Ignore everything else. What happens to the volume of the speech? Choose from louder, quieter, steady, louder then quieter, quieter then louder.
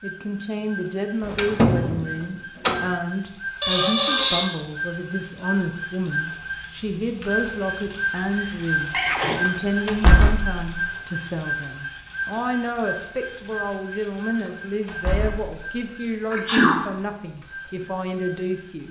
steady.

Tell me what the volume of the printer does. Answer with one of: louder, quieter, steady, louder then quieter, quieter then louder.
louder then quieter.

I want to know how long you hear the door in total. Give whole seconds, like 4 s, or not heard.
4 s.